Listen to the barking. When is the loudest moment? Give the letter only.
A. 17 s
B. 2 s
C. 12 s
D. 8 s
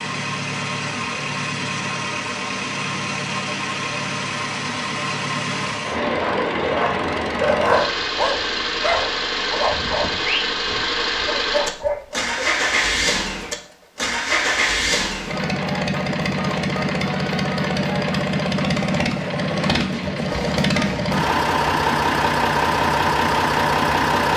D.